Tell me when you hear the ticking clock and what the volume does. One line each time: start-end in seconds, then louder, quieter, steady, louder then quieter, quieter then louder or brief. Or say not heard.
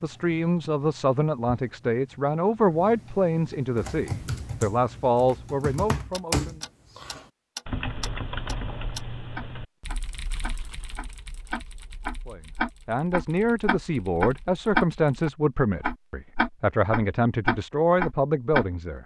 0.0-19.0 louder.